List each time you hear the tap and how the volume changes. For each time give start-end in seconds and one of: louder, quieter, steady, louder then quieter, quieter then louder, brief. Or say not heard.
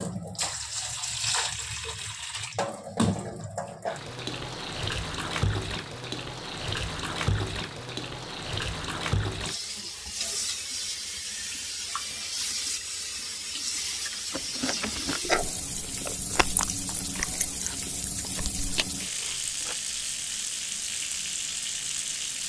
0.0-22.4 steady.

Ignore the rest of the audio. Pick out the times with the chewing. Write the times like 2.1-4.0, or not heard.
14.3-19.8.